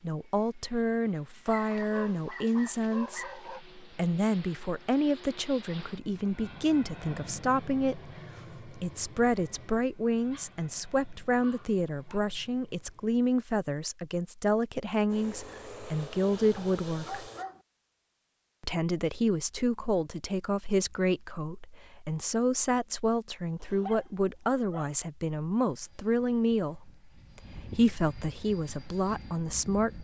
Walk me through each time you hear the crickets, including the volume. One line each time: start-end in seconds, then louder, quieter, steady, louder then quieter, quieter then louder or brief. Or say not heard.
not heard.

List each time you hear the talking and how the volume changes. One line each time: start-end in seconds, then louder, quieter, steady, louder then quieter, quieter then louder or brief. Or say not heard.
0.0-17.2 steady
18.6-29.9 steady.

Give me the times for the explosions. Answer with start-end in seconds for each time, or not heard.
not heard.